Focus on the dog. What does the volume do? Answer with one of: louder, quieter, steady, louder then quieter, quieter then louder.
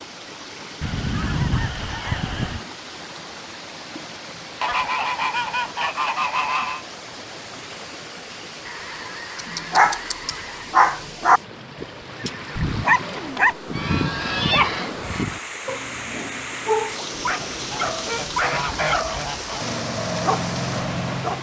quieter.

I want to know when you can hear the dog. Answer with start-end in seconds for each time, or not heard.
9.3-21.3.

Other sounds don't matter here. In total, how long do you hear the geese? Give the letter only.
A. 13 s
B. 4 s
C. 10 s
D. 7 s
C.